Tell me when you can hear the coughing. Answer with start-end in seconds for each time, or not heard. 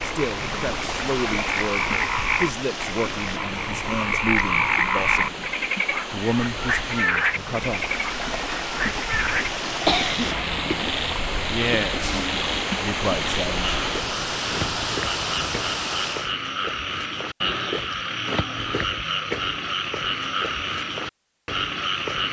9.8-10.9.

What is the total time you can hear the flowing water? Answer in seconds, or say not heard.
16 s.